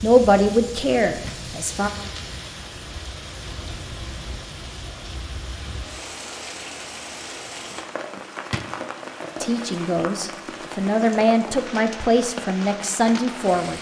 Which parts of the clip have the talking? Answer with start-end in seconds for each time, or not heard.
0.0-1.9, 9.4-13.7.